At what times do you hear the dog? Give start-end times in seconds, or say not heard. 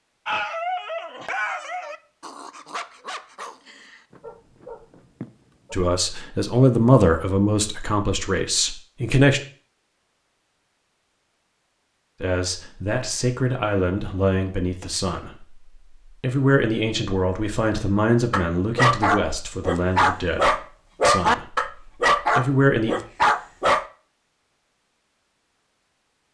0.2-5.8, 18.3-23.9.